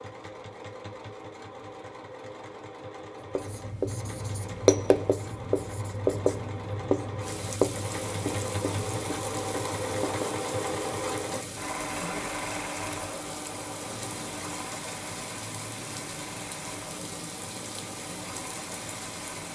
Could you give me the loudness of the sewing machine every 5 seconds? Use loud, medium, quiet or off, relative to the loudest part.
medium, loud, loud, medium.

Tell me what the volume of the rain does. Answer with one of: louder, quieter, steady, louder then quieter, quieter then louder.
steady.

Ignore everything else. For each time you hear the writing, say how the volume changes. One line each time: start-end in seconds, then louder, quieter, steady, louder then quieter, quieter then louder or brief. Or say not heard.
3.4-10.3 quieter.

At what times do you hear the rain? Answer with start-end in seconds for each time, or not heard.
7.2-19.4.